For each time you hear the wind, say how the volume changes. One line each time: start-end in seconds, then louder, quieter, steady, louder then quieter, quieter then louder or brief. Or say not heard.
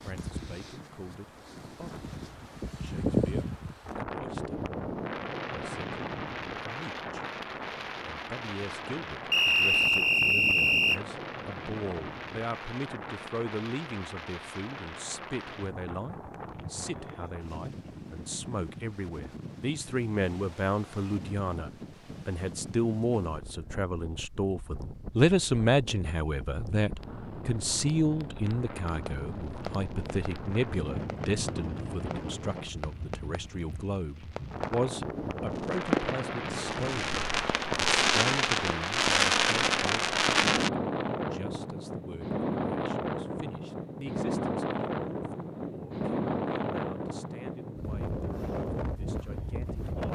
0.0-50.1 quieter then louder.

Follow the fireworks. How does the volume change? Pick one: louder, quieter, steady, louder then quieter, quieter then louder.
louder.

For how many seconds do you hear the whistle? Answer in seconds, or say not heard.
2 s.